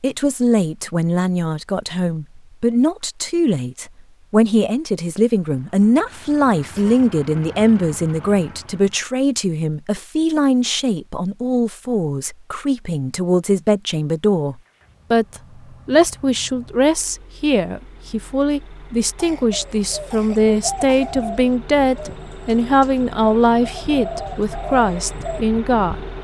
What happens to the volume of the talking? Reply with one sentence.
The loudness of the talking stays about the same.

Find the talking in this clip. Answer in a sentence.
You can hear the talking from 0.0 to 25.9 s.